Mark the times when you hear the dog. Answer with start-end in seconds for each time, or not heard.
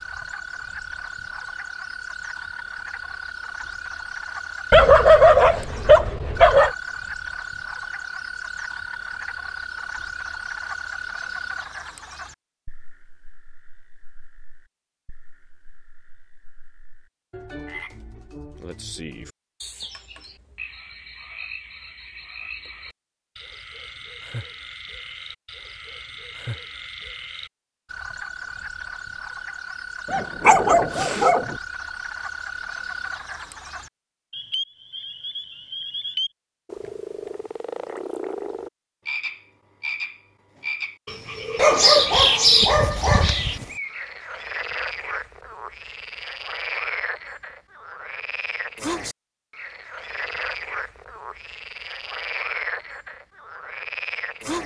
4.7-6.7, 30.1-31.6, 41.5-43.6.